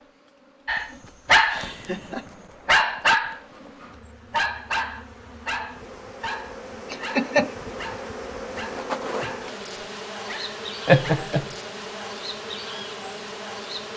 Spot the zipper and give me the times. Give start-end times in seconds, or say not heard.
8.6-9.3.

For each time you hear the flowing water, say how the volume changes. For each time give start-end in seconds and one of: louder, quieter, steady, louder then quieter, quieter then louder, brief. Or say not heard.
not heard.